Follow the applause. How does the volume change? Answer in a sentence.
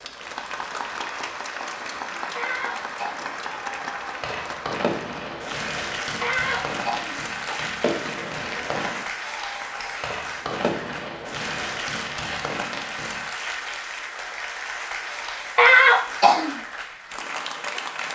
The volume of the applause stays about the same.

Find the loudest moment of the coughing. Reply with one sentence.
The volume of the coughing peaks at 16 seconds.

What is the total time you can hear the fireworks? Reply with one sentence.
The fireworks can be heard for 10 seconds in total.